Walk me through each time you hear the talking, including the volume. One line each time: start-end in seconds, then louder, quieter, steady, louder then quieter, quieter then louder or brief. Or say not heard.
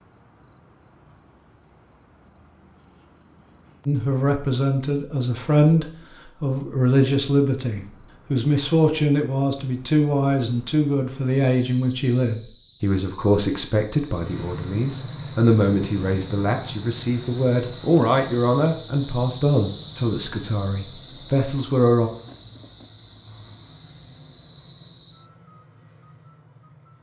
3.9-22.1 steady.